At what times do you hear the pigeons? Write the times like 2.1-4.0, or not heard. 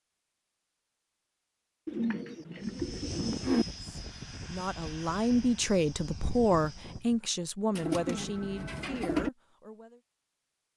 1.9-3.6, 7.7-9.3.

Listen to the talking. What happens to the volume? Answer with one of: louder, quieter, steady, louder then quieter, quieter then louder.
quieter.